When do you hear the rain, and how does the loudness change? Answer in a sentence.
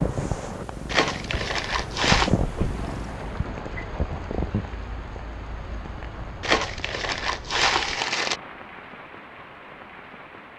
You can hear the rain from 0.0 to 10.5 s, getting quieter.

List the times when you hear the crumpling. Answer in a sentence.
You can hear the crumpling from 0.8 to 2.3 s and from 6.4 to 8.4 s.